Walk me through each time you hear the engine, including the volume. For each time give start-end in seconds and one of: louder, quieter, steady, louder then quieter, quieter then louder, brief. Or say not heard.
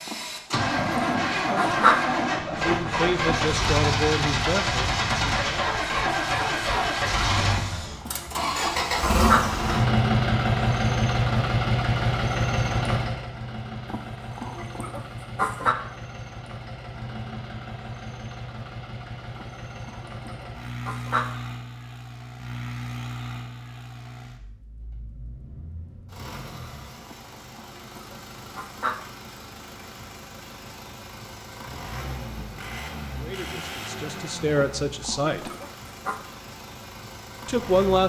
0.0-38.0 quieter.